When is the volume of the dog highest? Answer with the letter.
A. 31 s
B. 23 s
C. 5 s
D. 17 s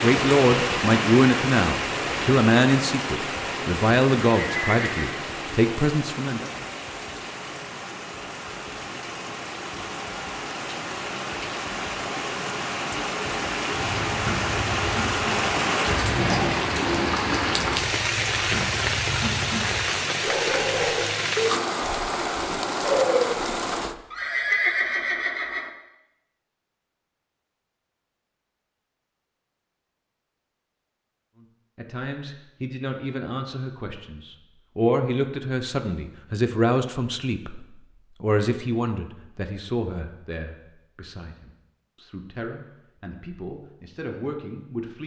B.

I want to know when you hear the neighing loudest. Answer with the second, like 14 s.
25 s.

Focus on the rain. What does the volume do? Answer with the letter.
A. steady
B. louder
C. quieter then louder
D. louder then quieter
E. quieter
C.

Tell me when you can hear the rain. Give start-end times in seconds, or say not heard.
0.0-23.9.